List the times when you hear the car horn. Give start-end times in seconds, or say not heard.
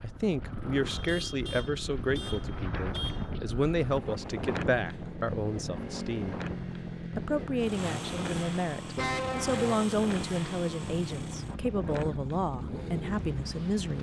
0.8-3.3, 8.9-9.7.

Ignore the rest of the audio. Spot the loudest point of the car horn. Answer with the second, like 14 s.
9 s.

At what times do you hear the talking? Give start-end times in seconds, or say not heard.
0.0-6.4, 7.2-13.9.